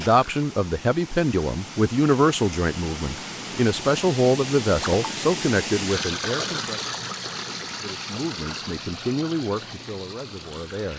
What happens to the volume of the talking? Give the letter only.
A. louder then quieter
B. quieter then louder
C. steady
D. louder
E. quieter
E.